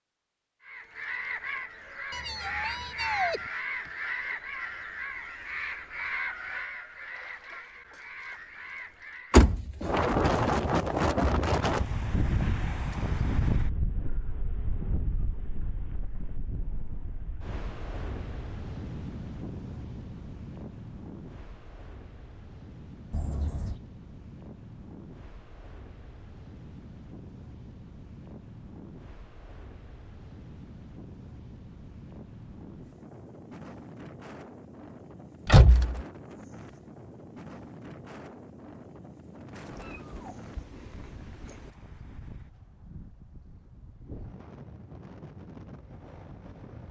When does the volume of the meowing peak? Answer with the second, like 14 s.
3 s.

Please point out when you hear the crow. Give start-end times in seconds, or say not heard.
0.6-9.5.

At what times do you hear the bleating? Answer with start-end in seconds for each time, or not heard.
not heard.